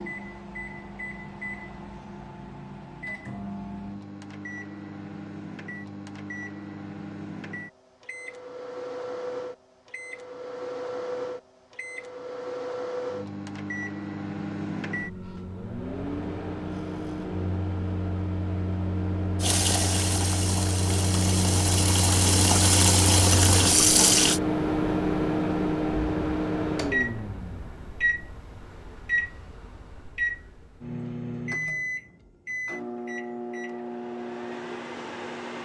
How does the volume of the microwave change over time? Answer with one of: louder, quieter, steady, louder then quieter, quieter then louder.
louder then quieter.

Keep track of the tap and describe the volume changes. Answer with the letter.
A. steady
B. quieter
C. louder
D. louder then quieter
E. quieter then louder
C.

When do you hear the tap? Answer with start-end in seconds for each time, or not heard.
19.4-24.4.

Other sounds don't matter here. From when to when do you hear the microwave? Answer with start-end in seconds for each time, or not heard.
0.0-35.6.